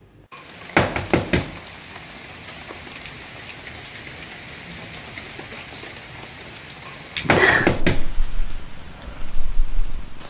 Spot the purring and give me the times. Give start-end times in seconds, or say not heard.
7.2-10.2.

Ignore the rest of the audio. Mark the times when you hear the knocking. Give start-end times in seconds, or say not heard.
0.3-1.6, 6.8-8.1.